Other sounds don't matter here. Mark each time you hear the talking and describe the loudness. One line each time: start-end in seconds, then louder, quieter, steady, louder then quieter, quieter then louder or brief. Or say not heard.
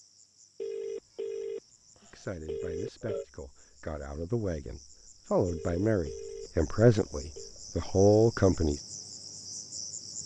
2.0-8.8 louder.